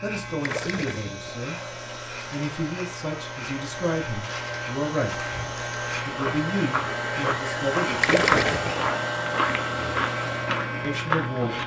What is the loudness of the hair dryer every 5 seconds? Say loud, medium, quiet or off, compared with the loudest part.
medium, loud, loud.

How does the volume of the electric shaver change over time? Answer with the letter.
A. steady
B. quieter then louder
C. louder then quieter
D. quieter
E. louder
E.